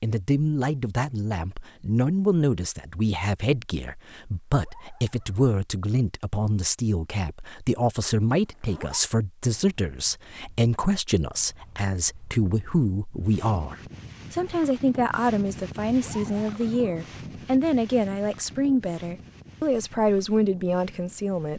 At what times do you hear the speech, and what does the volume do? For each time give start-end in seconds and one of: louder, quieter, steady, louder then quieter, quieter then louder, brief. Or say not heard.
0.0-21.5 steady.